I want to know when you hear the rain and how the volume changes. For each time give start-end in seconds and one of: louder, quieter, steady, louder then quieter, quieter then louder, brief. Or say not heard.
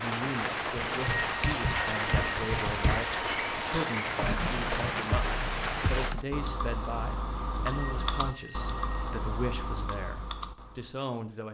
0.0-6.2 steady.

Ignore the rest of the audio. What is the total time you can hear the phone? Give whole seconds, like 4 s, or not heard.
3 s.